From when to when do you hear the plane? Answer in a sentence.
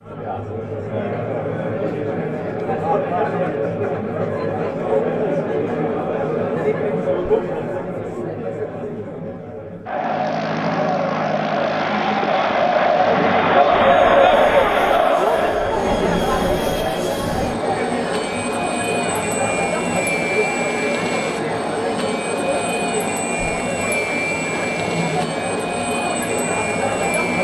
You can hear the plane from 9.8 to 27.3 s.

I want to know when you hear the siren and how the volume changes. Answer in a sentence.
The siren can't be heard in this clip.